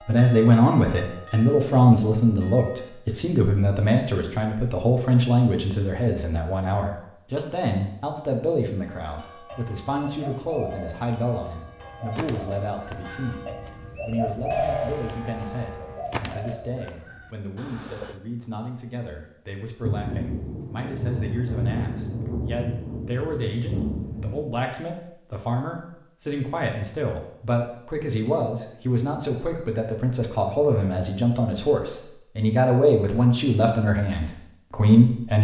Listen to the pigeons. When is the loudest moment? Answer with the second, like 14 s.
15 s.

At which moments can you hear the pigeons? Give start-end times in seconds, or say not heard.
9.4-18.1.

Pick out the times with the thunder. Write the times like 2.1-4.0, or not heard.
19.8-24.4.